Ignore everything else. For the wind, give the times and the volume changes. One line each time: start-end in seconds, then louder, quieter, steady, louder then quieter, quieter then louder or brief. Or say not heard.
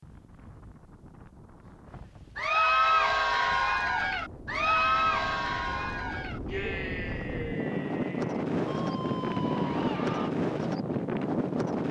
0.0-11.8 louder.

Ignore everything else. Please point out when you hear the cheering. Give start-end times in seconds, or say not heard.
2.4-10.3.